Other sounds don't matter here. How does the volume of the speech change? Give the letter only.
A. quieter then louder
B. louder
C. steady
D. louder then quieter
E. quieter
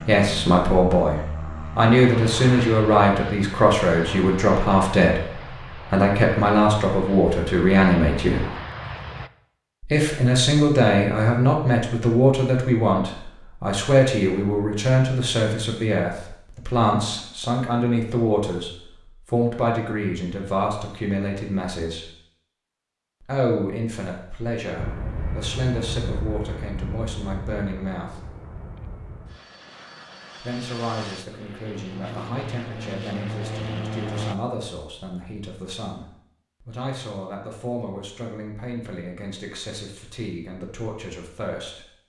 E.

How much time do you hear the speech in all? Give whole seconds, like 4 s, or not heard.
37 s.